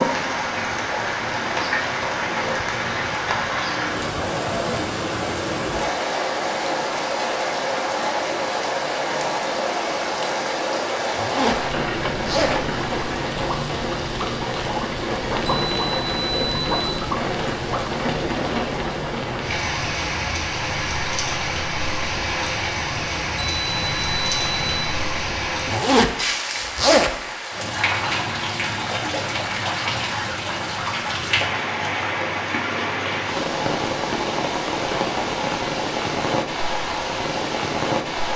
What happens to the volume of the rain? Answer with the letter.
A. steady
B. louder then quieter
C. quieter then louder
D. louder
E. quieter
A.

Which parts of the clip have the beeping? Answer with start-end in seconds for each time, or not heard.
15.4-16.9, 23.4-24.9.